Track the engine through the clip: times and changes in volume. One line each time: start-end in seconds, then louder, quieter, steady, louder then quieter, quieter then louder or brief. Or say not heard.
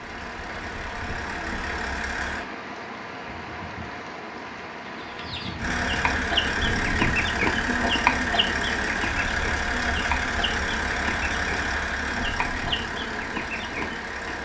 0.0-2.5 brief
5.5-14.4 quieter.